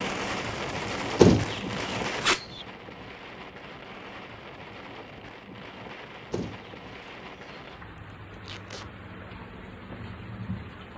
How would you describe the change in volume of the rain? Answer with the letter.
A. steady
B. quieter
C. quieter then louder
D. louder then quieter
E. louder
B.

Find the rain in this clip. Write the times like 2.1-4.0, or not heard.
0.0-10.9.